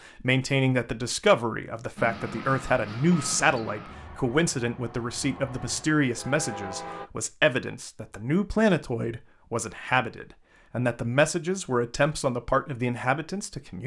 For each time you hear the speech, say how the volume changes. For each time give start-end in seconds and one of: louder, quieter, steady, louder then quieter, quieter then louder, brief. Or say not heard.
0.1-13.8 steady.